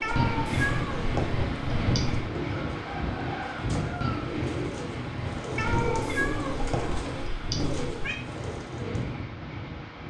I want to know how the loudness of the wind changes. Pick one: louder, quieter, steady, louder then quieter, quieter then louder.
quieter.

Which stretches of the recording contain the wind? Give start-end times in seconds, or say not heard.
0.0-10.0.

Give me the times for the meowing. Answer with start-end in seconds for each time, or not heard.
0.0-2.2, 5.5-8.2.